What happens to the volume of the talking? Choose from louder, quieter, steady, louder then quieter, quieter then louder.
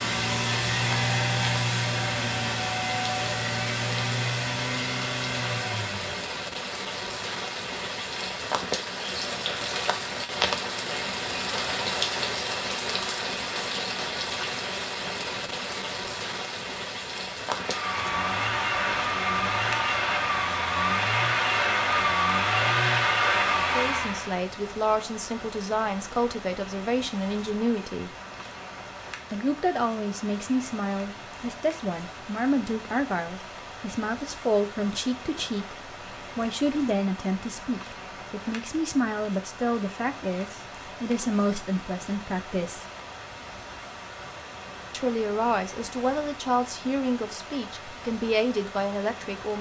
steady.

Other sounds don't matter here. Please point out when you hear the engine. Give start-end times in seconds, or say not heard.
0.0-6.4, 17.4-24.4.